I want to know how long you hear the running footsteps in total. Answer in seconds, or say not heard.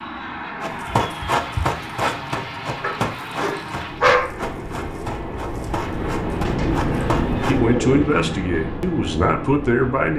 7 s.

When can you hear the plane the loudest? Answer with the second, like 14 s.
7 s.